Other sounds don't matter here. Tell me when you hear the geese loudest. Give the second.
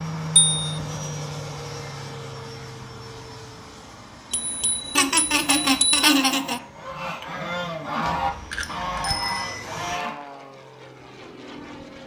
8 s.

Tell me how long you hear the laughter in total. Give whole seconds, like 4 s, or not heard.
2 s.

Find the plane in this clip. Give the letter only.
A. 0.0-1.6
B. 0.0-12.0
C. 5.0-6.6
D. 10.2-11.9
B.